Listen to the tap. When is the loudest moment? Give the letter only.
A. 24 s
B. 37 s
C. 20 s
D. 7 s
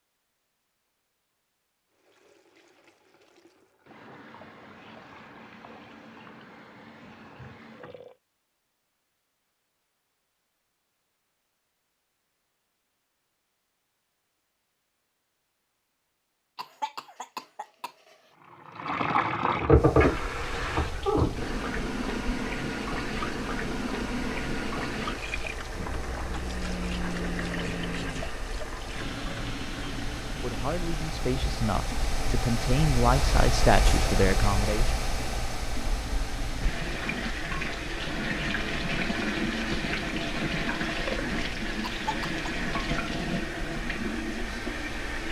C.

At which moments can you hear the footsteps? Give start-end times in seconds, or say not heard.
not heard.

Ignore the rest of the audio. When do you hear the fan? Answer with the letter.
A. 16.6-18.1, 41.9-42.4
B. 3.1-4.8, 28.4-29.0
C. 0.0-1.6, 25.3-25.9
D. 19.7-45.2
D.